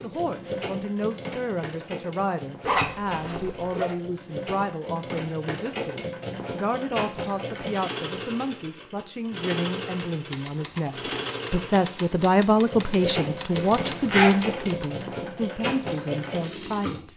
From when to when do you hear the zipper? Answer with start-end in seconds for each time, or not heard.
2.6-4.0, 13.6-14.7.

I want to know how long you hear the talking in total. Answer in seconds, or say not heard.
17 s.